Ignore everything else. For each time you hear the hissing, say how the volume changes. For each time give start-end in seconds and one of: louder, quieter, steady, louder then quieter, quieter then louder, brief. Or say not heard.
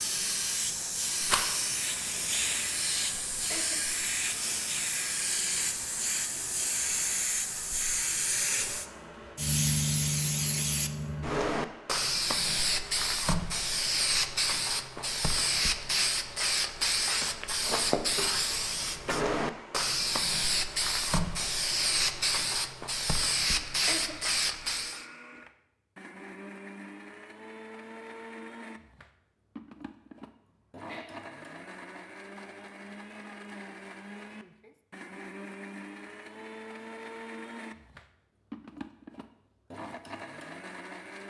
0.0-25.1 steady.